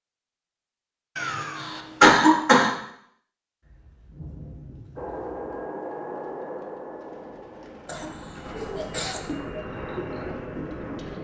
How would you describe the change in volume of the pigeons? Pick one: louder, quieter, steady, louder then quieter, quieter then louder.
louder.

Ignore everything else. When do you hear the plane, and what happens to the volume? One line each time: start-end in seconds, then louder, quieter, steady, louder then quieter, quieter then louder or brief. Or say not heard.
5.0-11.1 quieter then louder.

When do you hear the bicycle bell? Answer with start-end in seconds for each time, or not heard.
not heard.